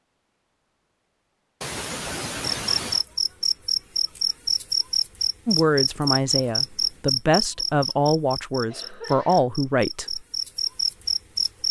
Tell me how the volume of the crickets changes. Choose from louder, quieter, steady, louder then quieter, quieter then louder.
quieter then louder.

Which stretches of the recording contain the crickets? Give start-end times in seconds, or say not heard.
2.5-11.6.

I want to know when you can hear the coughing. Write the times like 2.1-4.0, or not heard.
1.6-3.0, 8.7-9.4.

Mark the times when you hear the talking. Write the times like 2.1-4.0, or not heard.
5.5-10.2.